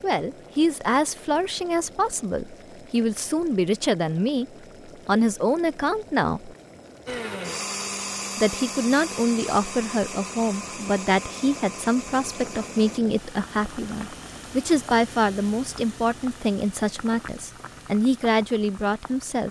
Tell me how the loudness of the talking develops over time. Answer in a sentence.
The volume of the talking stays about the same.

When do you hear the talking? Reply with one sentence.
You can hear the talking from 0.0 to 6.5 s and from 8.3 to 19.4 s.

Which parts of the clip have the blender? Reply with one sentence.
The blender can be heard from 7.0 to 13.0 s.